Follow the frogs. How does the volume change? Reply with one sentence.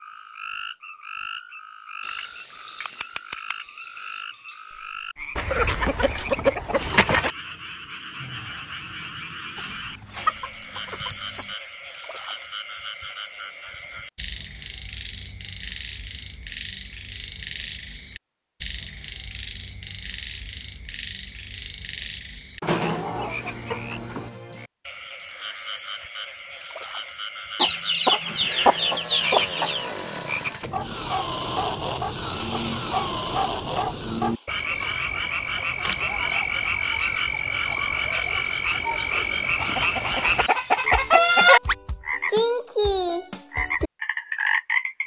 The loudness of the frogs goes up.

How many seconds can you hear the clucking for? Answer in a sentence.
The clucking can be heard for 10 seconds in total.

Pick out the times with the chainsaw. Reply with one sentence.
The chainsaw can be heard from 28.4 to 34.5 s.